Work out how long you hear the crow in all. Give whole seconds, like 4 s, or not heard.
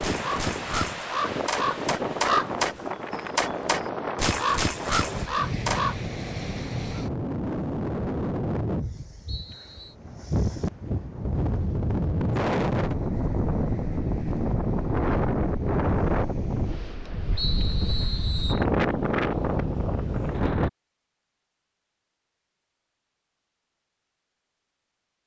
6 s.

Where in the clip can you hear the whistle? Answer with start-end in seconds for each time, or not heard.
9.2-9.9, 17.4-18.6.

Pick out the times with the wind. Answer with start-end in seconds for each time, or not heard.
0.0-20.7.